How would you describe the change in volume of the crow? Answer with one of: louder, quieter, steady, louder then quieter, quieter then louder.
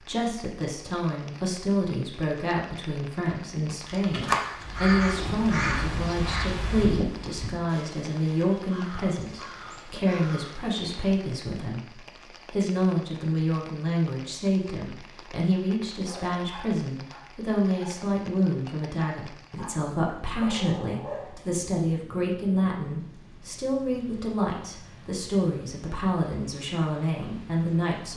quieter.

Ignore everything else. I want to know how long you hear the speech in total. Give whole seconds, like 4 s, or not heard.
28 s.